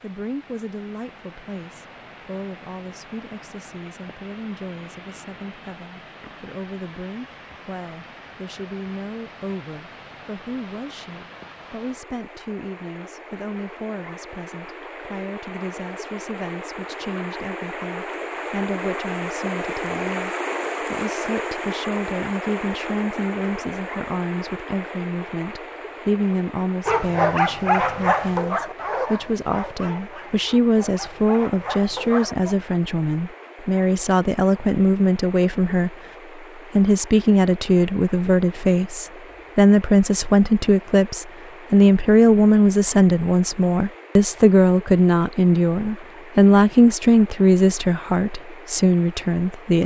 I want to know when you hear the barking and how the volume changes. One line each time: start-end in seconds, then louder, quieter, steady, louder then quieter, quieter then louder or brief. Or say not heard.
26.9-32.5 quieter then louder.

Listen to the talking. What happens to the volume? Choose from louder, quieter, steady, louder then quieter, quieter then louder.
louder.